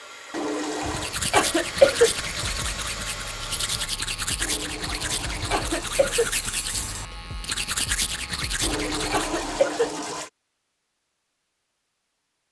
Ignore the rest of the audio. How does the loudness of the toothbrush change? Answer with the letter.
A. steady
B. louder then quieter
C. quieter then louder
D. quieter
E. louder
A.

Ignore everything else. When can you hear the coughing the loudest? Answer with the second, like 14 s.
2 s.